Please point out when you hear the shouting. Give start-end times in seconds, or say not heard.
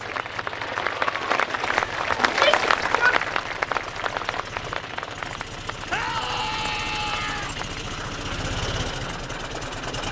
2.2-3.2, 5.8-7.5.